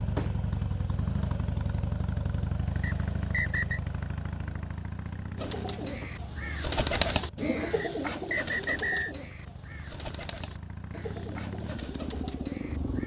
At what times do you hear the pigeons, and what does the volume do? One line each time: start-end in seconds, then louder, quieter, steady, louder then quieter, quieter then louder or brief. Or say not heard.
5.3-13.0 quieter.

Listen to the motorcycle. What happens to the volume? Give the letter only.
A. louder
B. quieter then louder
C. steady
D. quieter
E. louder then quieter
B.